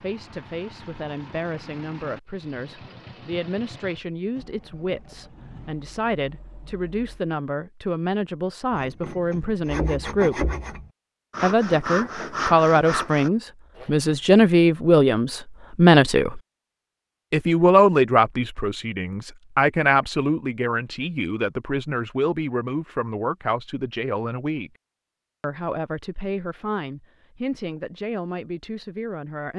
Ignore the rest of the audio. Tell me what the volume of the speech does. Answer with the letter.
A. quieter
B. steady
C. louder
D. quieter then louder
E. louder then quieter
E.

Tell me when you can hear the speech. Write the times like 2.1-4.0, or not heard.
0.0-10.4, 11.4-16.4, 17.3-24.7, 25.4-29.5.